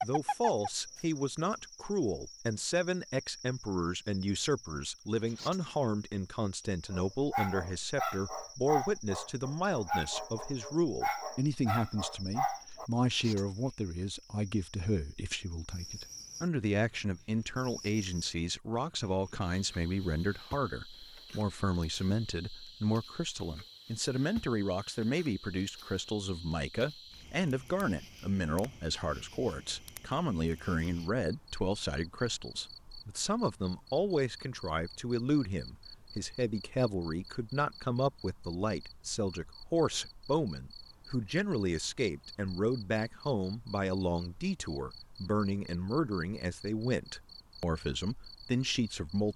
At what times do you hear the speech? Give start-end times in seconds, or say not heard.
0.0-49.3.